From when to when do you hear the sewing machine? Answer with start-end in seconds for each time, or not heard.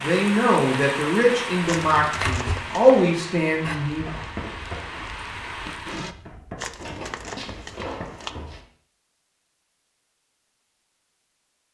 not heard.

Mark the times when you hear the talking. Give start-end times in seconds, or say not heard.
0.0-4.0.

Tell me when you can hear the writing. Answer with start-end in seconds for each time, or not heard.
3.9-8.6.